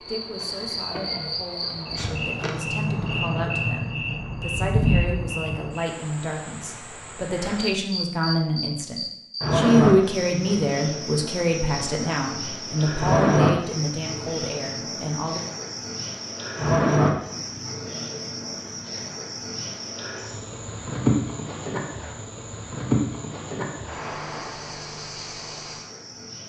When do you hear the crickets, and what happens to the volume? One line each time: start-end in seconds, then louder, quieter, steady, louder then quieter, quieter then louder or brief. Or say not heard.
0.0-26.4 steady.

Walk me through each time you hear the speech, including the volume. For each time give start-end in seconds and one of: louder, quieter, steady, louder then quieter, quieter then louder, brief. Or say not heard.
0.0-15.4 louder then quieter.